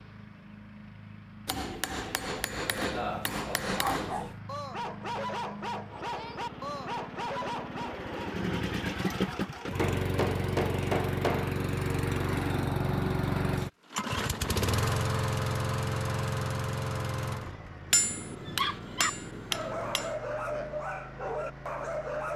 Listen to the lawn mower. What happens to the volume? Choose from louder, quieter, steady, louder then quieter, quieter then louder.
louder then quieter.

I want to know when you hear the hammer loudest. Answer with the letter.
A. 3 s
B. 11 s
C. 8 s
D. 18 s
D.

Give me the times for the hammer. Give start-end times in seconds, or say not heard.
1.4-4.3, 9.8-11.6, 17.9-20.2.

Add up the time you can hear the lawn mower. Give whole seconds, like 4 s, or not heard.
22 s.